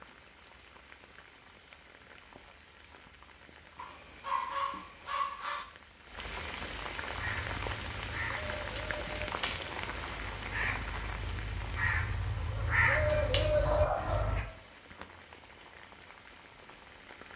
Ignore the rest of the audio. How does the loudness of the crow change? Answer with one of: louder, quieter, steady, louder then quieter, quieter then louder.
louder.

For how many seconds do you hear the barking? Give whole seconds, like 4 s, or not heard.
3 s.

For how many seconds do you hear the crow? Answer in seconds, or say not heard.
7 s.